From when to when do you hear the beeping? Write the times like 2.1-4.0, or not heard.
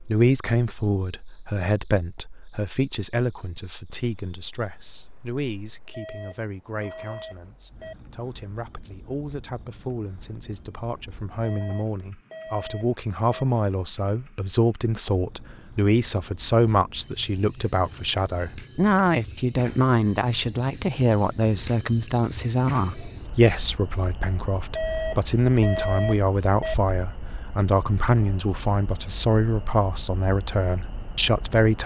5.9-8.0, 11.4-13.4, 24.8-26.8.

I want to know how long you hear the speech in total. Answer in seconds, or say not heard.
32 s.